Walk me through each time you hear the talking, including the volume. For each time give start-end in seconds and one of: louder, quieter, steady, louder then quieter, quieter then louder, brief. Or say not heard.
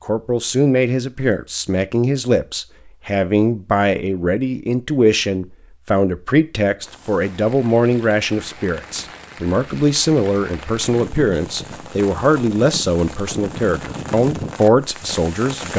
0.1-15.7 steady.